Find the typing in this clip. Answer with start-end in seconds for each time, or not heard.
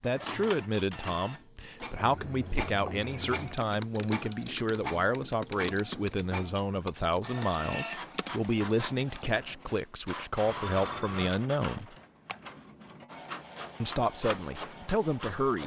3.3-9.5.